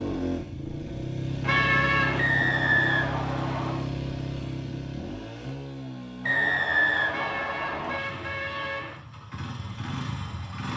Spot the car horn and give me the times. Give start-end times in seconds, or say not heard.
1.4-2.2, 7.1-9.0.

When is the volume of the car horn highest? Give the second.
2 s.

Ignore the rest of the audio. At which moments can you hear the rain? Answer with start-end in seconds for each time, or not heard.
not heard.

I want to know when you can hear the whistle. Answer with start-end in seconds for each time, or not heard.
2.1-3.9, 6.2-8.0.